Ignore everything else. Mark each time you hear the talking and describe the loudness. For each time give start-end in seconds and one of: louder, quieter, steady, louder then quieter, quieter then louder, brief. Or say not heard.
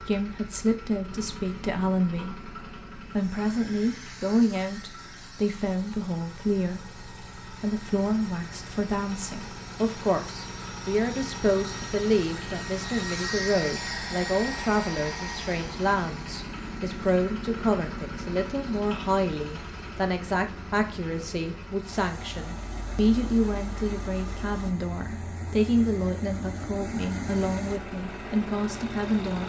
0.0-29.4 steady.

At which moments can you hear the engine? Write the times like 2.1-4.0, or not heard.
0.0-29.4.